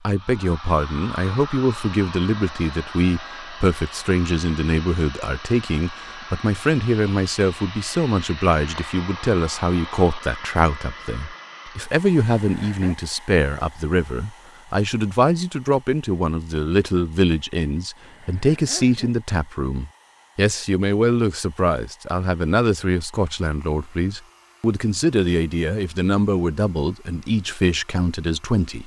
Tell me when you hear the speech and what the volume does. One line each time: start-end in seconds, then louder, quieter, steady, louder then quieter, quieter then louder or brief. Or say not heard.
0.1-28.8 steady.